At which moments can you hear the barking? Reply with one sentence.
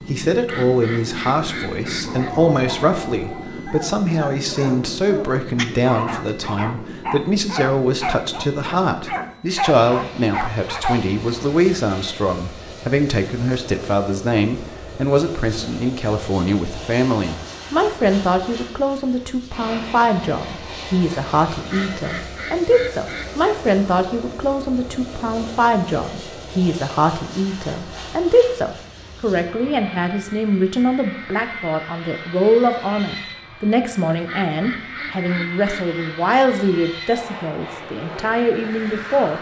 You can hear the barking from 2.0 to 11.0 s.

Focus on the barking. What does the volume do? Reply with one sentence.
The volume of the barking goes up.